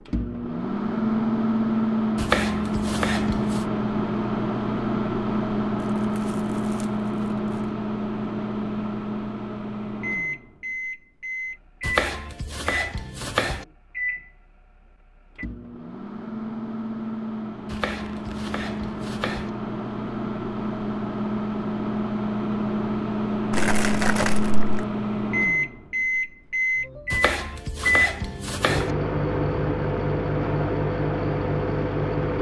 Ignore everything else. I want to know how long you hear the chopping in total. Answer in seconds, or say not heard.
7 s.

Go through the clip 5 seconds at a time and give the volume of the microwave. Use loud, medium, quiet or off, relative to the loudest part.
loud, loud, medium, medium, loud, loud, loud.